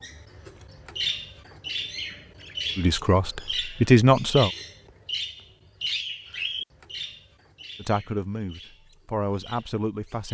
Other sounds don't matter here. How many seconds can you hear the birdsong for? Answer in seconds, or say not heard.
10 s.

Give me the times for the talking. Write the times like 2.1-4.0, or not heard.
2.8-4.5, 7.8-10.3.